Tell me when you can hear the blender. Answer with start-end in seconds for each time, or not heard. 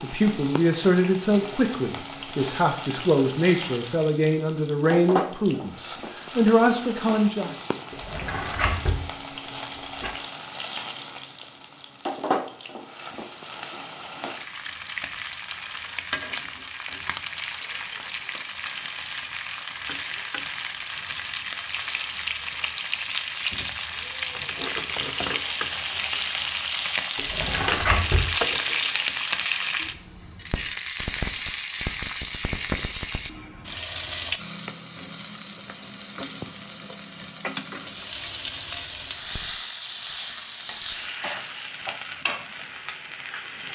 not heard.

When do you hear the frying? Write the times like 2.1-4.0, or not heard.
0.0-43.6.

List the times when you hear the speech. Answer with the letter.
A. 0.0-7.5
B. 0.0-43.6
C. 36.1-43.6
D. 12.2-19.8
A.